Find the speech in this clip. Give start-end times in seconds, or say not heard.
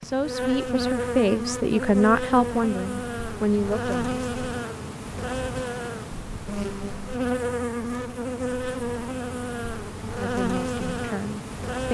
0.0-4.2, 10.2-11.9.